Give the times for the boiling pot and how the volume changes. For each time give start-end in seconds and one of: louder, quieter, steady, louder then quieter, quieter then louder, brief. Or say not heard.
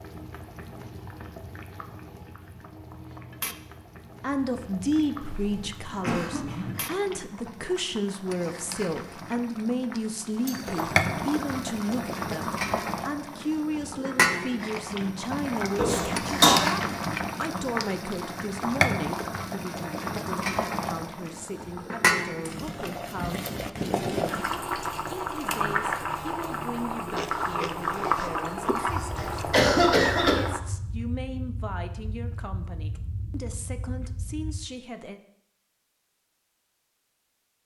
0.0-30.6 louder.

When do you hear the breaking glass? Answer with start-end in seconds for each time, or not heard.
10.4-10.9.